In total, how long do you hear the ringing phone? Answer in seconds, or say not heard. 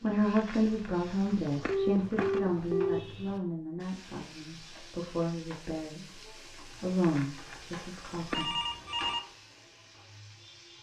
2 s.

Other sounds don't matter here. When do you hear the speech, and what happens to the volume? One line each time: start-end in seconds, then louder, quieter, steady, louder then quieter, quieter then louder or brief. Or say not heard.
0.0-8.6 quieter then louder.